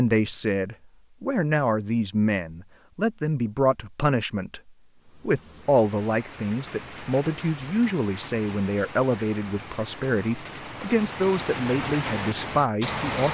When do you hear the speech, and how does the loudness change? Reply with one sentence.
The speech can be heard from 0.0 to 13.2 s, at a steady volume.